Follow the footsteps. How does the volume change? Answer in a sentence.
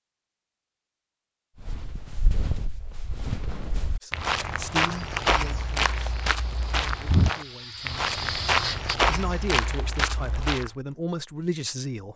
The volume of the footsteps goes up.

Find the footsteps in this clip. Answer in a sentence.
You can hear the footsteps from 1.6 to 10.7 s.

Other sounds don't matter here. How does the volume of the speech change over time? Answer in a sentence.
The loudness of the speech goes down, then up.